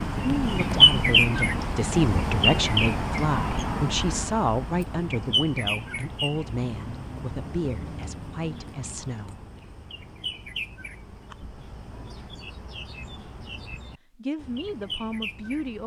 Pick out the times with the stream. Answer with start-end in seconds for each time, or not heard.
not heard.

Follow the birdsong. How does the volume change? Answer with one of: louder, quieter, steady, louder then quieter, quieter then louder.
quieter.